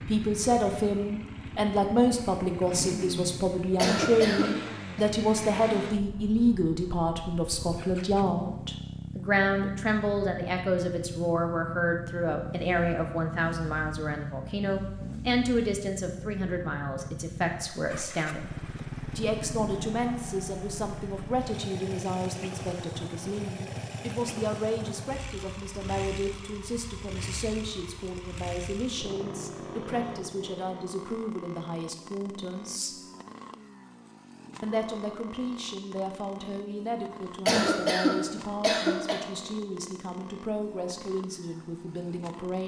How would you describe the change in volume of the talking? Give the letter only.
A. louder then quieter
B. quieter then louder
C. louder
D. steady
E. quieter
E.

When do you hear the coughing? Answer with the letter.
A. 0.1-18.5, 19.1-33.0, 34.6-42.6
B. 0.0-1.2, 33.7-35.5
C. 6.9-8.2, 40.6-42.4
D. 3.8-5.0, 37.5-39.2
D.